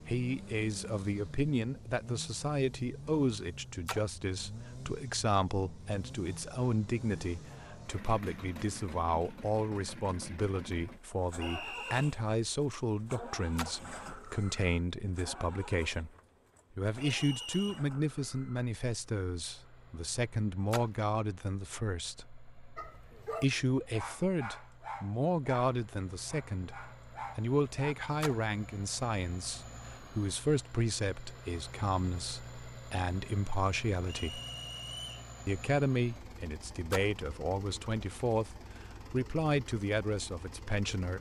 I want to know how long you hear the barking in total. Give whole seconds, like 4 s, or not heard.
5 s.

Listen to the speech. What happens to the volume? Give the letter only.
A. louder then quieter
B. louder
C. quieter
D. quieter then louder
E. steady
E.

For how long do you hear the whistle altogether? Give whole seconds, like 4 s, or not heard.
3 s.